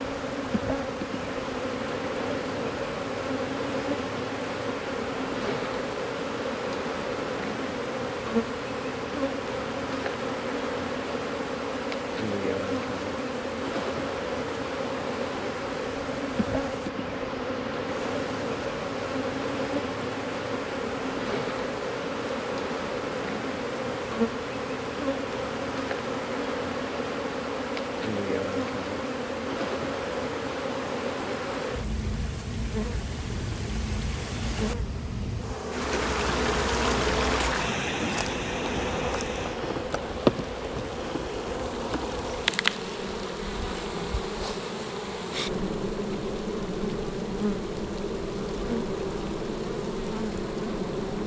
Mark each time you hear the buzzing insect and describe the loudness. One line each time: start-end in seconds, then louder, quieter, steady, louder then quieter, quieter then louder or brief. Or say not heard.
0.0-51.2 steady.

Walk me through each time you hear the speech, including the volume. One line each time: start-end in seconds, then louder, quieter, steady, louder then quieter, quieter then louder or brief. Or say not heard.
not heard.